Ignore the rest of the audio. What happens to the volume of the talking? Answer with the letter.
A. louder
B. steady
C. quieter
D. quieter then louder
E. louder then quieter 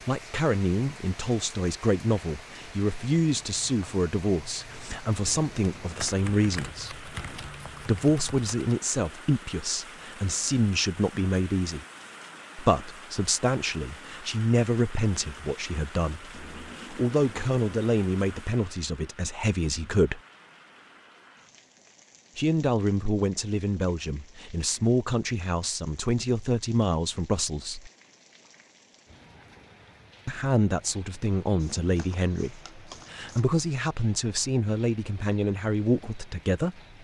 B.